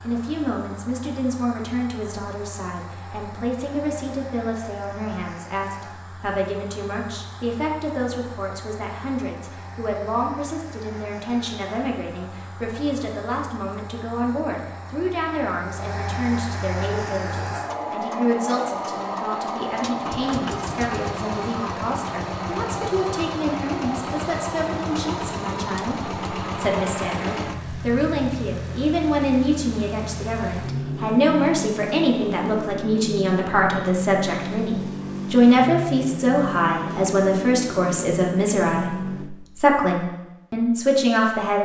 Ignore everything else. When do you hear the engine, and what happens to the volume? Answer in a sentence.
The engine can be heard from 0.0 to 39.3 s, getting louder.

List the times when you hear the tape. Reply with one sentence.
You can't hear the tape here.